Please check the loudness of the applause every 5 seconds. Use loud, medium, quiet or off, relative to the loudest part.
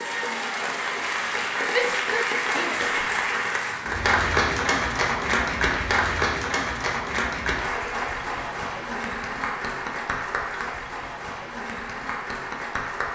loud, loud, medium.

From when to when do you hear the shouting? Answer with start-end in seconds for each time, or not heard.
1.6-2.9.